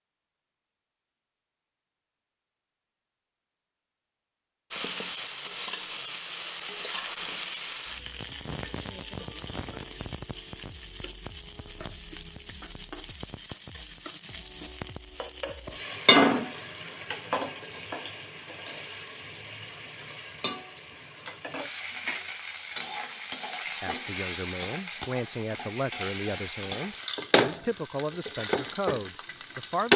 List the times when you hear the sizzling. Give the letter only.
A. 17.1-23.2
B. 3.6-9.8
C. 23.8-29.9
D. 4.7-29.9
D.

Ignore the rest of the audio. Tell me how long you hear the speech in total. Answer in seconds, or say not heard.
6 s.